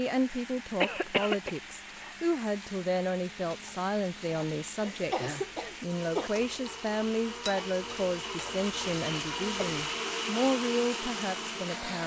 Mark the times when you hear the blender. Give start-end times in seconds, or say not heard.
0.0-12.0.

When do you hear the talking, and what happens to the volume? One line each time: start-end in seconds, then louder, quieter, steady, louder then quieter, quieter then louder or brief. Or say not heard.
0.0-12.0 steady.